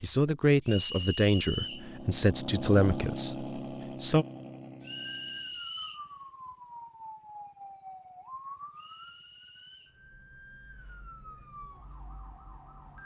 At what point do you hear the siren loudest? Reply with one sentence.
The volume of the siren peaks at 8 seconds.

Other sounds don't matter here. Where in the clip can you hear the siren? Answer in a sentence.
You can hear the siren from 4.8 to 13.0 s.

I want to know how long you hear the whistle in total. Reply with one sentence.
You can hear the whistle for 4 seconds altogether.